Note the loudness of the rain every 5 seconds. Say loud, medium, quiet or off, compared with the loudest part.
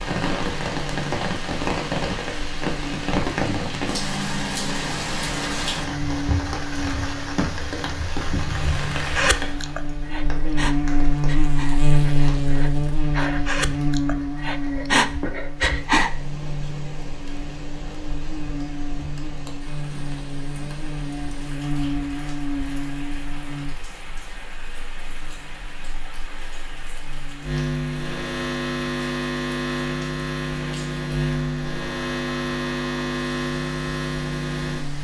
loud, loud, quiet, quiet, quiet, quiet, quiet.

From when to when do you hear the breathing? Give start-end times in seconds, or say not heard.
9.2-16.1.